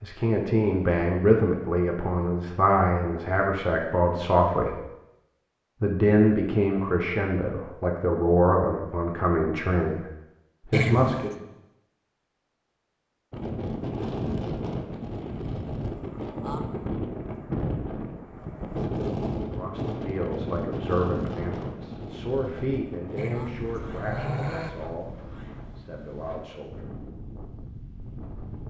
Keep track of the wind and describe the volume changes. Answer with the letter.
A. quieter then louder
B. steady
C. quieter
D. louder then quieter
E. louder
C.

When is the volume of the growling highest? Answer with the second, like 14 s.
11 s.